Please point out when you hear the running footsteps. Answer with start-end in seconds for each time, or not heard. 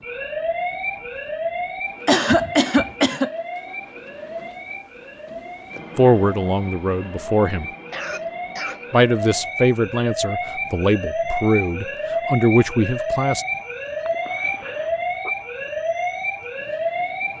not heard.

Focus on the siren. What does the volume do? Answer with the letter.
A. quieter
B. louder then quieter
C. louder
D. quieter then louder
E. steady
D.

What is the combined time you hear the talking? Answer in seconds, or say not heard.
6 s.